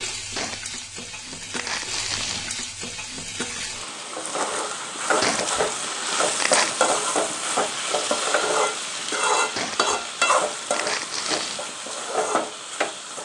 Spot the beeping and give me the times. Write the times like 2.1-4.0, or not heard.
not heard.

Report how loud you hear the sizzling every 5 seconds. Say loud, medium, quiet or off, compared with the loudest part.
medium, loud, loud.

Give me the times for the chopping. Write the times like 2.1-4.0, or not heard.
not heard.